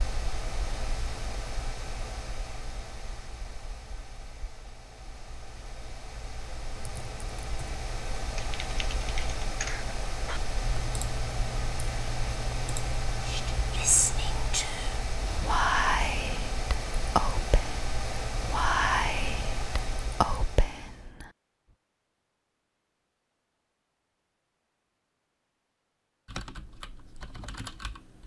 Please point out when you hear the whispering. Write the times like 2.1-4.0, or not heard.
13.2-21.3.